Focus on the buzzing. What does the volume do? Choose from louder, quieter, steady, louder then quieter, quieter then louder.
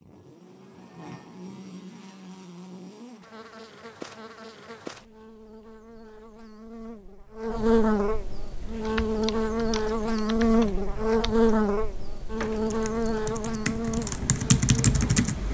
louder then quieter.